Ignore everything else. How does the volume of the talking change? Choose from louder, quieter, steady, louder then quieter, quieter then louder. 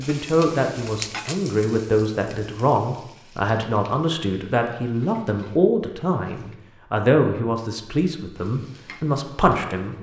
steady.